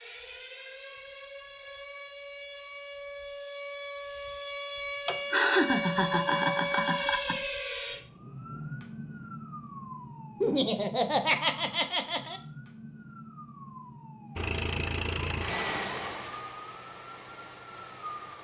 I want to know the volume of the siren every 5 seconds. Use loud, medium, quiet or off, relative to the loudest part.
medium, loud, medium, medium.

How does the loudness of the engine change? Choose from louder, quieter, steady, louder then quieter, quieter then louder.
quieter.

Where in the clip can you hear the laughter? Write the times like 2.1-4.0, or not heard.
5.0-7.3, 10.4-12.4.